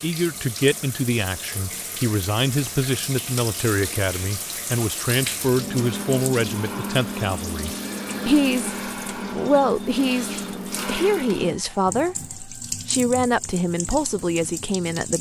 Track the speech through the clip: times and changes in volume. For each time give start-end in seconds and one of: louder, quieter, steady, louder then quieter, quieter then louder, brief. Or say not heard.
0.0-15.1 steady.